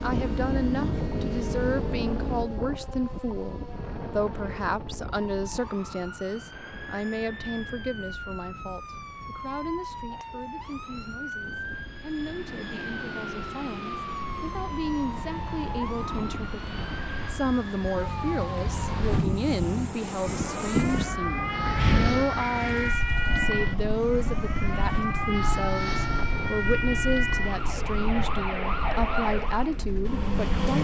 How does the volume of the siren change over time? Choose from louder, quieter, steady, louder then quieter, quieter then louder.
louder.